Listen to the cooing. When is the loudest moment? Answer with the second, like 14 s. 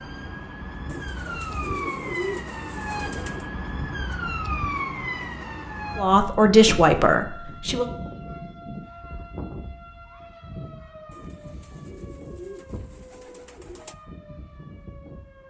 2 s.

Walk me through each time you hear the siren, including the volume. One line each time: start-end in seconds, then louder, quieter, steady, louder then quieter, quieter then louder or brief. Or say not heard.
0.0-15.4 quieter.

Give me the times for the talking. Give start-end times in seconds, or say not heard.
6.0-7.8.